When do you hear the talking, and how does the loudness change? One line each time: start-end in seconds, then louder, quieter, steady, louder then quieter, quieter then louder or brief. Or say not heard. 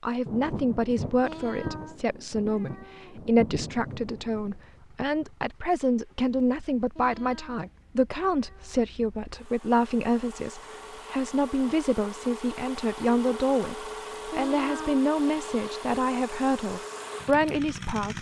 0.0-18.1 steady.